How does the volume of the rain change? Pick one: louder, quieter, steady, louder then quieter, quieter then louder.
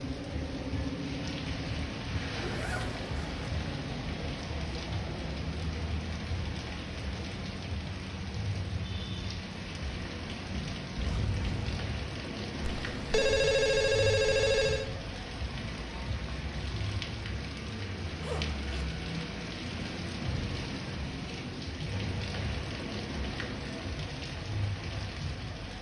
steady.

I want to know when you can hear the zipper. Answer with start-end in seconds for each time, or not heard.
2.3-3.5, 10.9-11.8, 18.2-18.9.